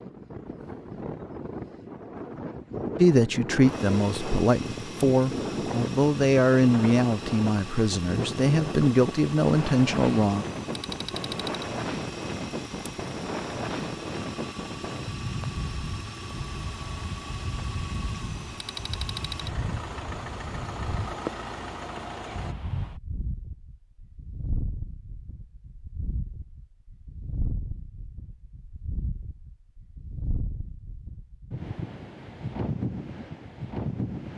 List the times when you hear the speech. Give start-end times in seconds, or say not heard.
3.0-10.4.